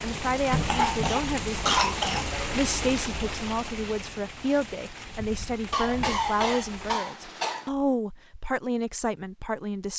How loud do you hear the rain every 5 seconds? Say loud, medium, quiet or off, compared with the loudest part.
loud, medium.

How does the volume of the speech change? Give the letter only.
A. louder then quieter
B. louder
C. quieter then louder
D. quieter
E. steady
E.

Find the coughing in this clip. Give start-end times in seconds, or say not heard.
0.7-2.2, 5.7-7.7.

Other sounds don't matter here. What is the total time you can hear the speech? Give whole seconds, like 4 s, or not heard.
10 s.